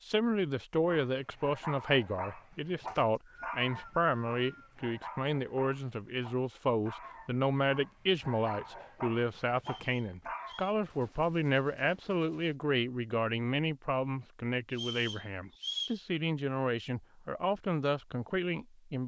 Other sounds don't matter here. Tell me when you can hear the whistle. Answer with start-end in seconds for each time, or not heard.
2.9-4.8, 9.6-10.8, 14.7-16.0.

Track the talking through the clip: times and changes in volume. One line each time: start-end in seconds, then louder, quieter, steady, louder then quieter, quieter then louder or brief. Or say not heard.
0.0-19.0 steady.